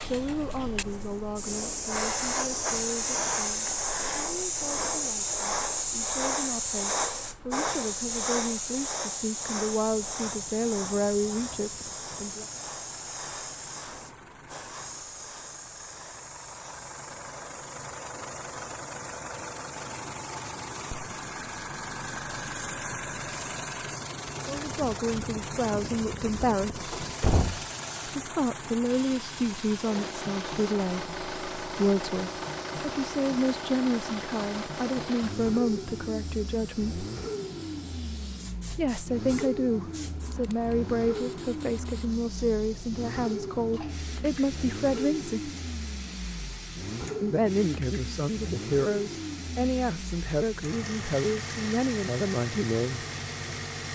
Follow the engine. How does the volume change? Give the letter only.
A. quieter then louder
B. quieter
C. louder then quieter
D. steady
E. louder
E.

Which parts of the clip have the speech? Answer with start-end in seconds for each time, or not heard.
0.0-12.4, 24.4-26.9, 28.1-37.0, 38.7-45.5, 47.2-53.0.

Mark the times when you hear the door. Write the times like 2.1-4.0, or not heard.
26.9-27.6.